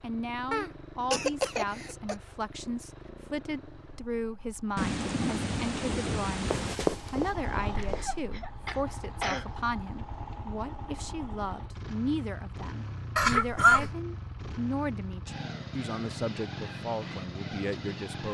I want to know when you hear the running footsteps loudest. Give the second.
7 s.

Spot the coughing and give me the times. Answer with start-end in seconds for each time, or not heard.
0.5-2.1, 7.8-9.4, 13.2-13.9.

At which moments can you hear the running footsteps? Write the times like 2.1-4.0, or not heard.
6.4-8.2.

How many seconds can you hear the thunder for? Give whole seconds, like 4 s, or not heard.
2 s.